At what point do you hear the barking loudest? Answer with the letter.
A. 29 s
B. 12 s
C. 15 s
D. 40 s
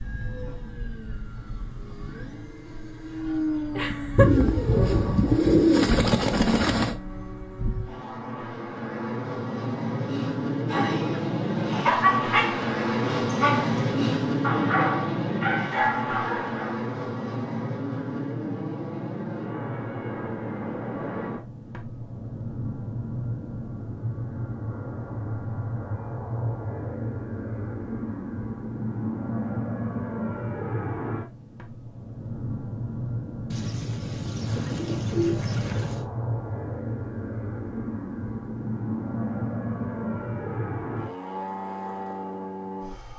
B.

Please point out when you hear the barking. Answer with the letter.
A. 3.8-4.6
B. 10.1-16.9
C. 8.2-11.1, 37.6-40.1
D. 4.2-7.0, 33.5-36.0
B.